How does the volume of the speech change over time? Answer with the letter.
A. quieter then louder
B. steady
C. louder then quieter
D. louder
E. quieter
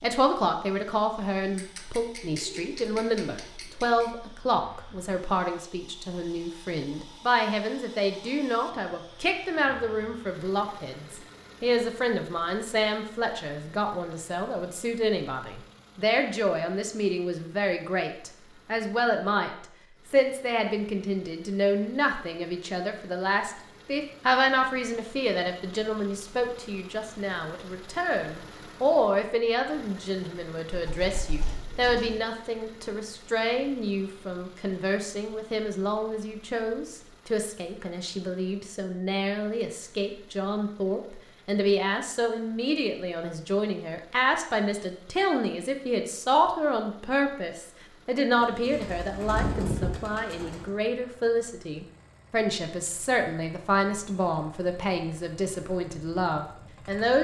B.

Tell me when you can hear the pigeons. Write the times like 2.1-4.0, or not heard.
1.6-4.1, 30.7-32.2, 48.4-50.8.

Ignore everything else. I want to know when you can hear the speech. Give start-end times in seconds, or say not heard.
0.0-19.5, 20.1-57.1.